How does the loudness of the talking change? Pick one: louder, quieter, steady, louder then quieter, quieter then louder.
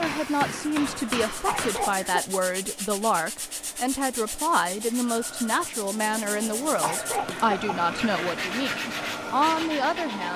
steady.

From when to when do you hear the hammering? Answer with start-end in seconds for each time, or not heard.
0.0-1.9.